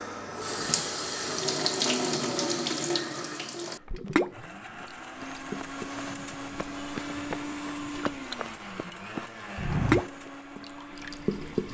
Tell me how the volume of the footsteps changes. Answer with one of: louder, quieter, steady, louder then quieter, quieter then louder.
louder.